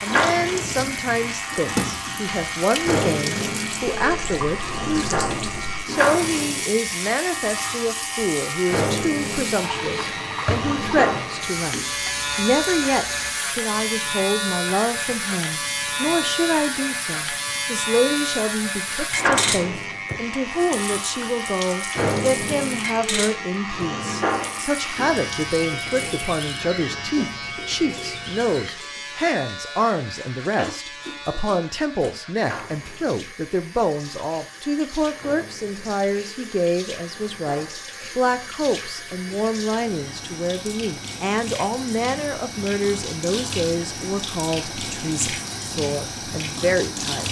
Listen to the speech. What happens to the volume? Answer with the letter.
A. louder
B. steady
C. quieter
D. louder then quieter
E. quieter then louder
B.